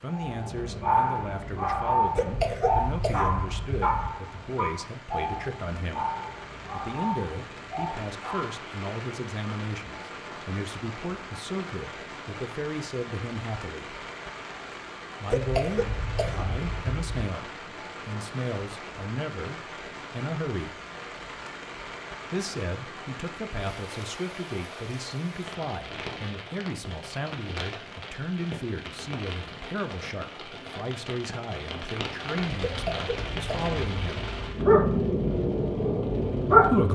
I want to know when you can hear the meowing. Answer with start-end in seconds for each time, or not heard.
not heard.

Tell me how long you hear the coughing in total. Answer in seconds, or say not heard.
6 s.